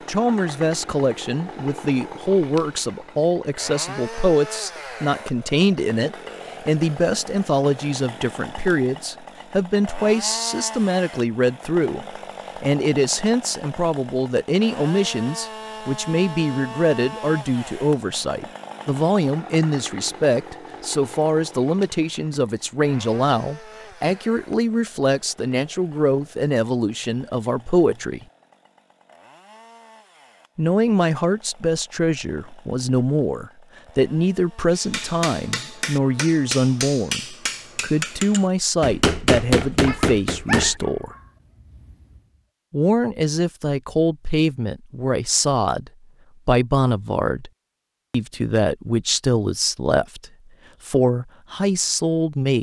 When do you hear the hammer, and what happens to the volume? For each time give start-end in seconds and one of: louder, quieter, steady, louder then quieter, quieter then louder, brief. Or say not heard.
34.7-40.8 louder.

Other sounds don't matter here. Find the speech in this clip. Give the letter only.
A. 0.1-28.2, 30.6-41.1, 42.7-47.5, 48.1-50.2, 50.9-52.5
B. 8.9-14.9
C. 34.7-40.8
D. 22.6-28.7
A.